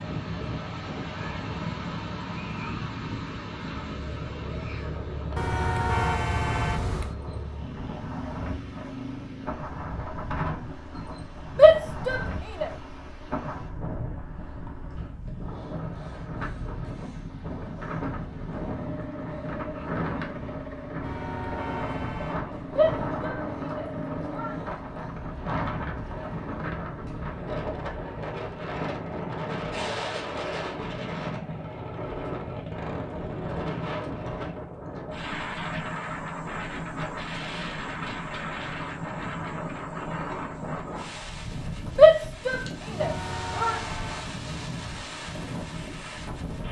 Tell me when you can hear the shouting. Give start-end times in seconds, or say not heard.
11.6-12.7, 22.8-24.6, 42.0-43.8.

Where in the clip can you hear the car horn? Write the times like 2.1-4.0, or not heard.
5.3-7.2, 21.0-22.4, 43.0-44.2.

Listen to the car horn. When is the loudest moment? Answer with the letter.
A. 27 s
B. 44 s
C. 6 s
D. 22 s
C.